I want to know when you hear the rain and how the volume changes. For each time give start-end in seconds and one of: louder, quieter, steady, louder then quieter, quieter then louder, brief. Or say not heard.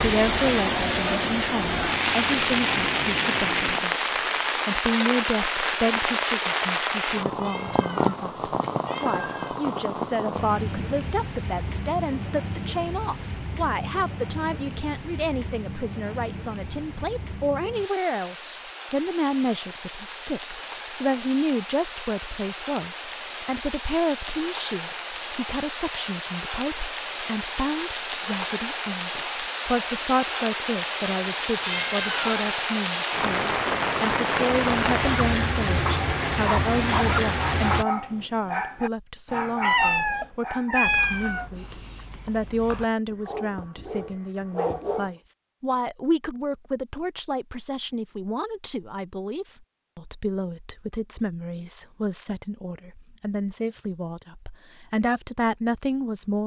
0.0-37.9 quieter then louder.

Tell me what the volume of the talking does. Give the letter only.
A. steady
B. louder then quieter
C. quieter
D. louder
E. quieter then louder
A.